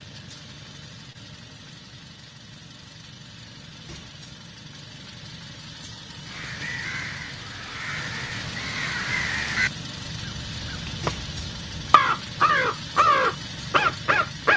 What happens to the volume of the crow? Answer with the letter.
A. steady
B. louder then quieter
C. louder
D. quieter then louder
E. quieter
C.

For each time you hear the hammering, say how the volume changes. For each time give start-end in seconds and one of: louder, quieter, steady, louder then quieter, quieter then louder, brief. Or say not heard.
not heard.